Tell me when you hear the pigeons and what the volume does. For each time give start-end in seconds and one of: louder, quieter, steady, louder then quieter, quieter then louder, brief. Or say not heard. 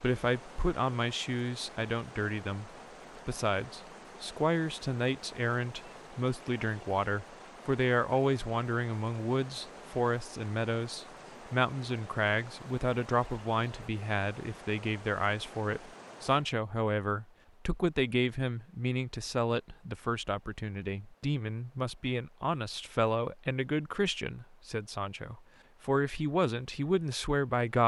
not heard.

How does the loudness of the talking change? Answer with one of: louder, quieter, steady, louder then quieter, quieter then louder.
steady.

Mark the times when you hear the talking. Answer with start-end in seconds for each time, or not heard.
0.0-27.8.